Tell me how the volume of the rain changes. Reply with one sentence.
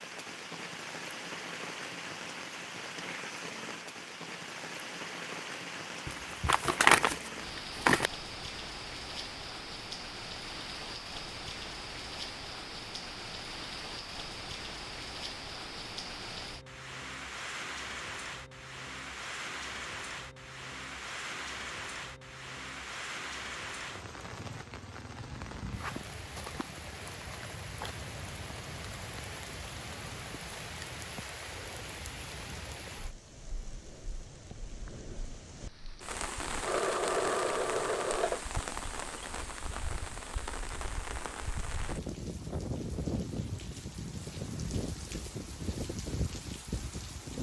The volume of the rain stays about the same.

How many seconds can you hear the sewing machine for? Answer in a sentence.
The sewing machine can be heard for 2 seconds in total.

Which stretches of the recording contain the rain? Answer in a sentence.
You can hear the rain from 0.0 to 47.3 s.